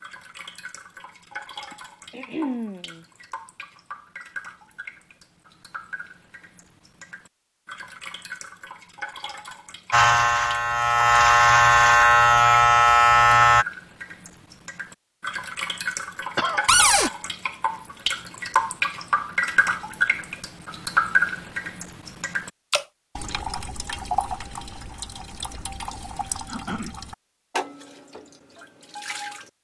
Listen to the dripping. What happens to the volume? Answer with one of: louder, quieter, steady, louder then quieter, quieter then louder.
louder then quieter.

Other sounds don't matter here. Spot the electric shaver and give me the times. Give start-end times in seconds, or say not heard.
9.9-13.7.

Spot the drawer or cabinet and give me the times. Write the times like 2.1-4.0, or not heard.
16.6-17.1.